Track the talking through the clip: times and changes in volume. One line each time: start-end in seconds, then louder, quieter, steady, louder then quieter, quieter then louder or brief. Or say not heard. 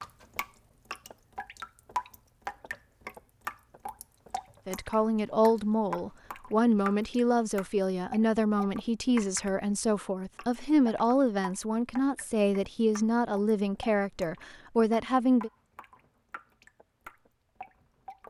4.7-15.5 steady.